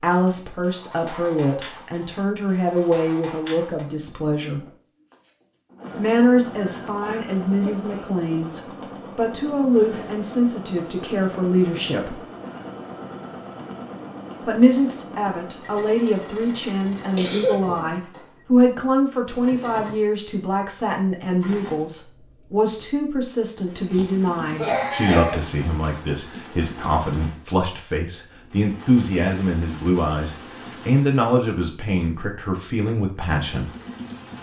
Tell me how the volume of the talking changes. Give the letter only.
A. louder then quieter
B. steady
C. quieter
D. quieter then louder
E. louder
B.